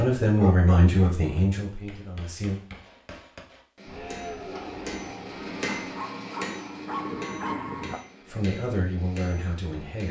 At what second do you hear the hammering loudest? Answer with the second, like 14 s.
6 s.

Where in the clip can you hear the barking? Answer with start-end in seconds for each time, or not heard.
0.2-1.1, 5.8-8.0.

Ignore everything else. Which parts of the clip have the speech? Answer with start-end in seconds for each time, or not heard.
0.0-2.6, 8.2-10.0.